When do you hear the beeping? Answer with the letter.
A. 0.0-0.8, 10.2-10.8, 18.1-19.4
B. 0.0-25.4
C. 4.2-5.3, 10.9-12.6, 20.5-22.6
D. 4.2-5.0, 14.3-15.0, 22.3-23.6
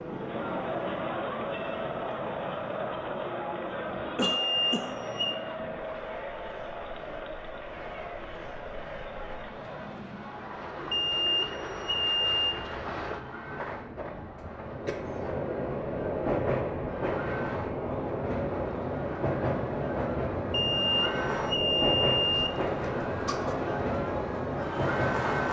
C.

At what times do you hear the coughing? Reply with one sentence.
You can hear the coughing from 4.2 to 5.0 s, from 14.3 to 15.0 s and from 22.3 to 23.6 s.